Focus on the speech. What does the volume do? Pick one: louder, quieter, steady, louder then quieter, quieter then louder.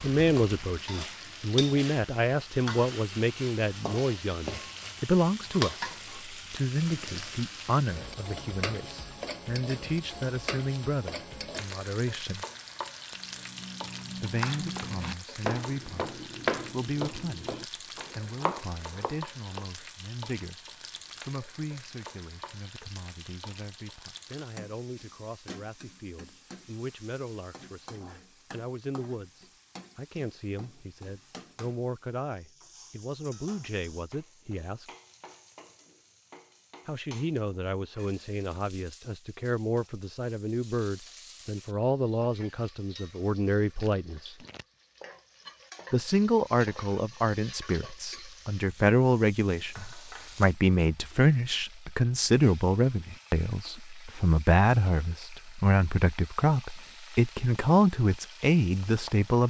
quieter then louder.